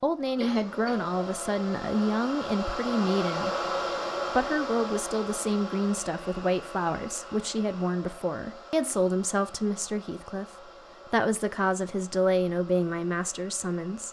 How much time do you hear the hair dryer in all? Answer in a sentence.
The hair dryer can be heard for 14 seconds in total.